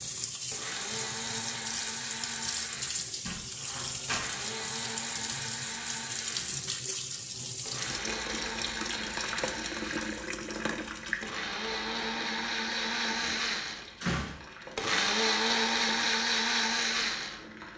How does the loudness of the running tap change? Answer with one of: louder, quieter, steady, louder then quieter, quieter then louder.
quieter.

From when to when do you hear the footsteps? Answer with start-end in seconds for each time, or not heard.
not heard.